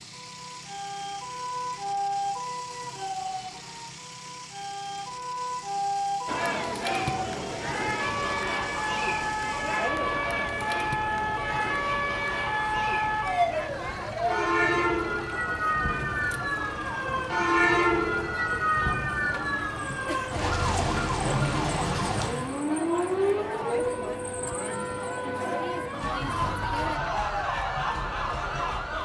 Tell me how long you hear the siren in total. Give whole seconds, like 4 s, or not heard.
29 s.